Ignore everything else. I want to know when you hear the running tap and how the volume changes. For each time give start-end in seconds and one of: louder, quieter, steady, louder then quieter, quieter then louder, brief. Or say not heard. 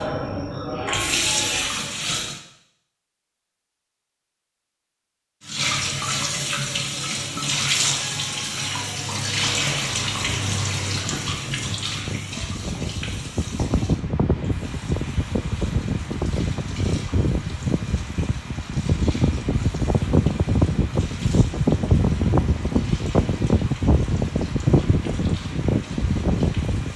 0.0-2.4 brief
5.4-26.9 quieter.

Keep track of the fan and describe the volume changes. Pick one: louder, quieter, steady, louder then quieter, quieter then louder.
louder.